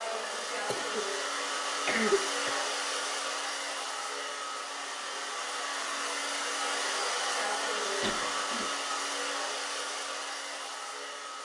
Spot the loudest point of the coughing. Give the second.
2 s.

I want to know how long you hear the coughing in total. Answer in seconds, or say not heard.
3 s.